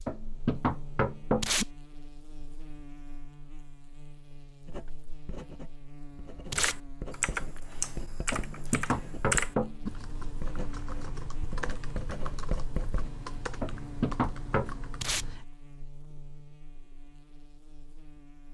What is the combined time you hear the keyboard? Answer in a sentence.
The keyboard can be heard for 9 seconds in total.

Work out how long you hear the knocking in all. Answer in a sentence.
The knocking can be heard for 4 seconds in total.